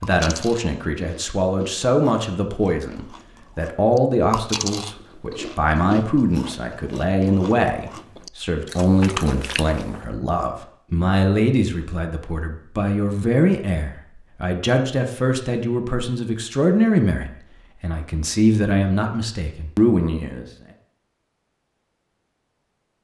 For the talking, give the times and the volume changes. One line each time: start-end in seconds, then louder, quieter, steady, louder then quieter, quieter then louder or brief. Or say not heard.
0.0-20.4 steady.